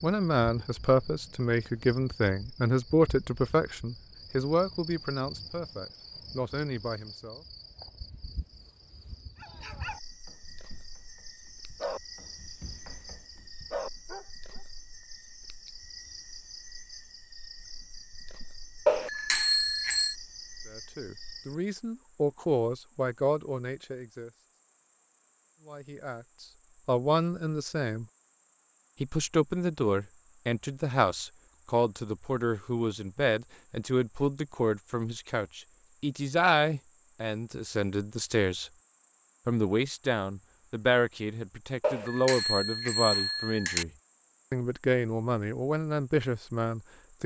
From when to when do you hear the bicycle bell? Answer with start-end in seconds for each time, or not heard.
18.9-20.1, 41.8-43.9.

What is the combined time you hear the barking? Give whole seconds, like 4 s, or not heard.
5 s.